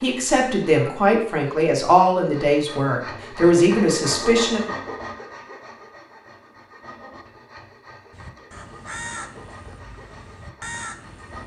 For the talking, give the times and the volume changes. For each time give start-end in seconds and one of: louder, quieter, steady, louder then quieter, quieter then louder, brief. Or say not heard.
0.0-4.7 steady.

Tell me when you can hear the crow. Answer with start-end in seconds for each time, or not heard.
8.1-11.4.